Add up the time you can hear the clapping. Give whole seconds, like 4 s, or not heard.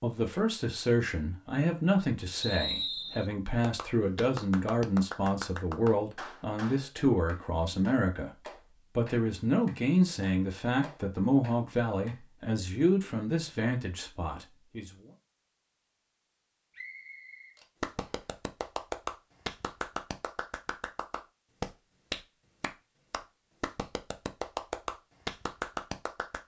17 s.